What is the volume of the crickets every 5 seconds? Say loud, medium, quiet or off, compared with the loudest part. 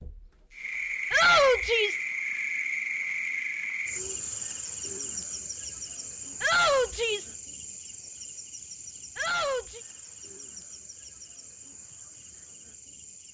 loud, medium, quiet.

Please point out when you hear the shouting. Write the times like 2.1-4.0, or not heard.
1.1-2.0, 6.4-7.3, 9.2-9.8.